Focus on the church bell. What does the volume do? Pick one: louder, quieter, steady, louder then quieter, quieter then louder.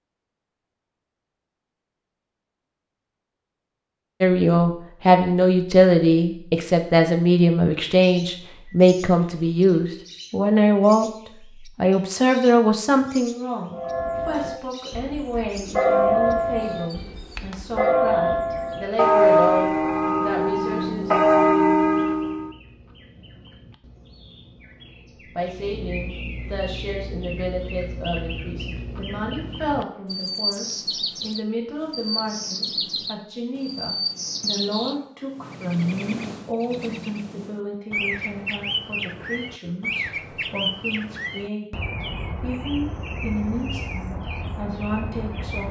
louder.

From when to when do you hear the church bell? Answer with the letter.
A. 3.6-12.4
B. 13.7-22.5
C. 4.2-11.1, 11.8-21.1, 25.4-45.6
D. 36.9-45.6
B.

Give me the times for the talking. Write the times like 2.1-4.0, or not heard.
4.2-11.1, 11.8-21.1, 25.4-45.6.